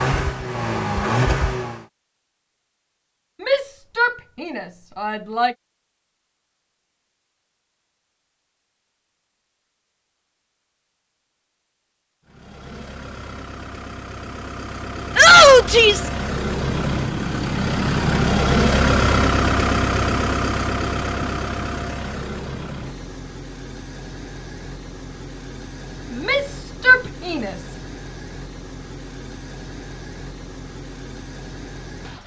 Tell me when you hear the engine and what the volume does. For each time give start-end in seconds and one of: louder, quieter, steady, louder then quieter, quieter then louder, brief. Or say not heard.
0.0-1.9 brief
12.2-32.2 louder then quieter.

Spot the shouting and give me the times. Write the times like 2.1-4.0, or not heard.
3.4-5.5, 15.2-16.1, 26.1-27.6.